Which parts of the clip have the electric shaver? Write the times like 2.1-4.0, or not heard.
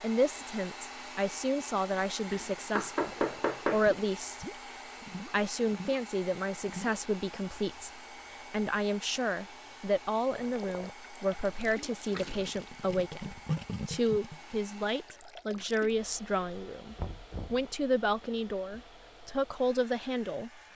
not heard.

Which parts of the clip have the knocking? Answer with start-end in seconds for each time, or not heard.
2.3-3.9, 16.9-17.6.